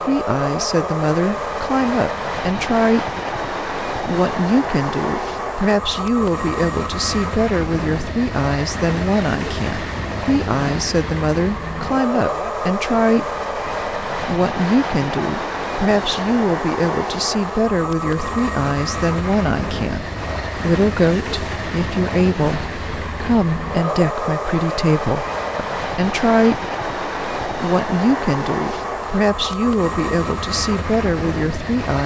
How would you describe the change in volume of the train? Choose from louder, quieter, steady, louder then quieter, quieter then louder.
steady.